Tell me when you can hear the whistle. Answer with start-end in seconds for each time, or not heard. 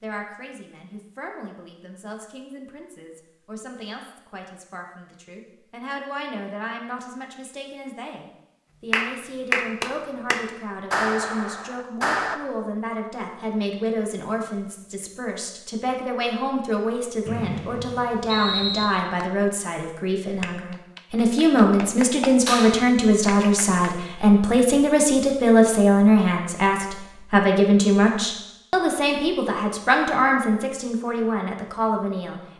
17.2-18.9.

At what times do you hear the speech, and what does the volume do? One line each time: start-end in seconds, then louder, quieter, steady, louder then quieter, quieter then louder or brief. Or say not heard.
0.0-32.5 louder.